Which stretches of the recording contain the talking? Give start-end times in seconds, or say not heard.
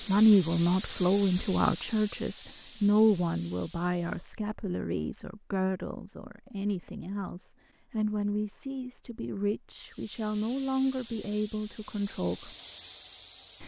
0.1-12.6.